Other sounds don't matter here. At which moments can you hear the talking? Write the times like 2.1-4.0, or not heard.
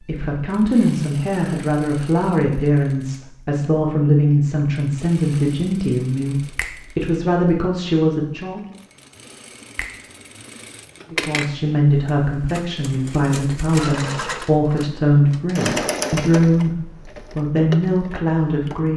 0.0-8.6, 11.1-18.9.